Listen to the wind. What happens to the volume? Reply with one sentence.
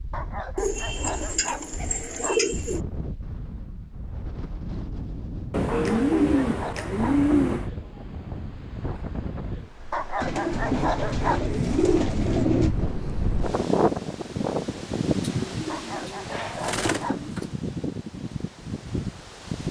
The volume of the wind goes up, then down.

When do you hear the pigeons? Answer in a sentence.
You can hear the pigeons from 0.6 to 2.8 s, from 5.5 to 7.7 s, from 10.2 to 12.8 s and from 15.2 to 17.6 s.